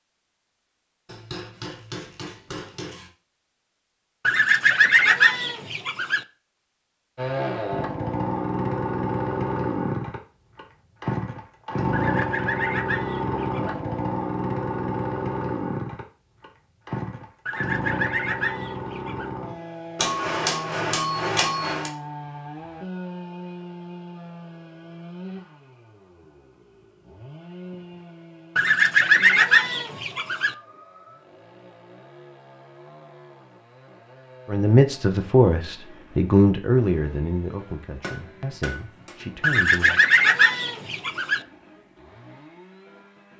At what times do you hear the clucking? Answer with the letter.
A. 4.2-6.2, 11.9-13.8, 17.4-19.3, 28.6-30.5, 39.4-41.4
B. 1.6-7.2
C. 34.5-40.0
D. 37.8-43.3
A.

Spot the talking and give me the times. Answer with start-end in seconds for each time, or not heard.
34.5-40.0.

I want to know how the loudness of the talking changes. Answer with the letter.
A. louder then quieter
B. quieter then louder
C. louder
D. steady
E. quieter
E.